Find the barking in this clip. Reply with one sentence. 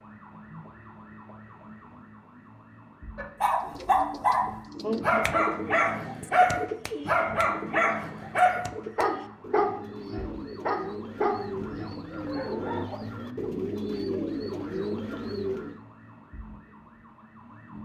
The barking can be heard from 3.1 to 12.9 s.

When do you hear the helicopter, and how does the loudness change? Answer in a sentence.
You can't hear the helicopter here.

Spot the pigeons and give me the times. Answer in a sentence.
The pigeons can be heard from 3.6 to 15.8 s.